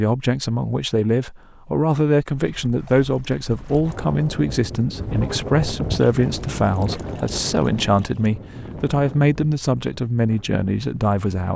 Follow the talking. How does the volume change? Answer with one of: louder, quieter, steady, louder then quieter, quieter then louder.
steady.